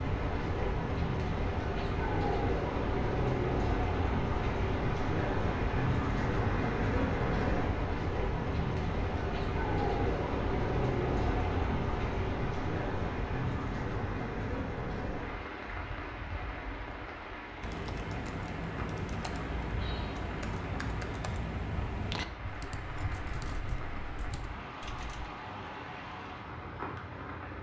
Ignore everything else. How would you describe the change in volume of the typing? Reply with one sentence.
The volume of the typing goes down.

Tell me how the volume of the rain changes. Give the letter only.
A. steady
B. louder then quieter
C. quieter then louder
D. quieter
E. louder
D.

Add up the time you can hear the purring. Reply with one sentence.
You can't hear the purring here.